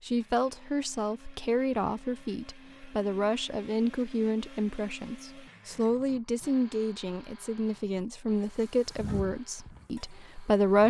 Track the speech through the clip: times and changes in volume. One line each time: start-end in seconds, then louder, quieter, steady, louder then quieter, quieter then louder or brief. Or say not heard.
0.1-10.8 steady.